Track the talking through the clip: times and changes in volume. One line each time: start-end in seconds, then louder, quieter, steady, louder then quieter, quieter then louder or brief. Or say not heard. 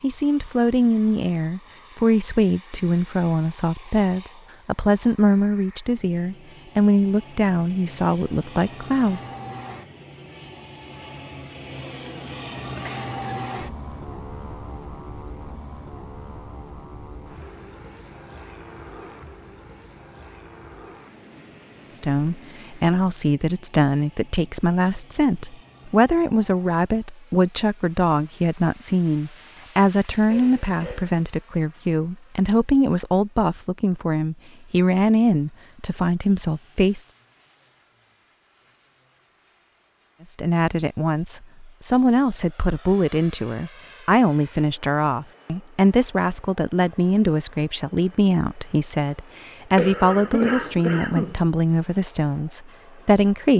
0.0-9.2 steady
21.9-37.0 steady
40.2-53.5 steady.